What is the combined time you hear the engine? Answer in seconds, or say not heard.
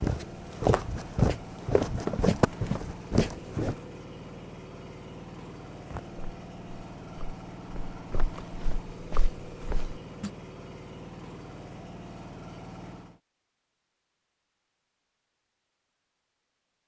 13 s.